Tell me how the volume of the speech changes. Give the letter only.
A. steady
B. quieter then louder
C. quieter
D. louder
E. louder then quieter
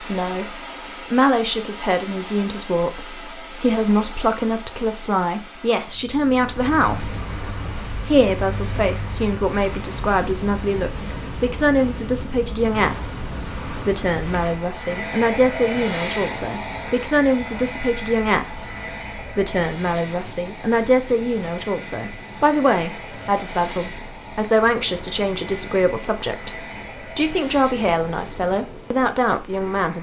A.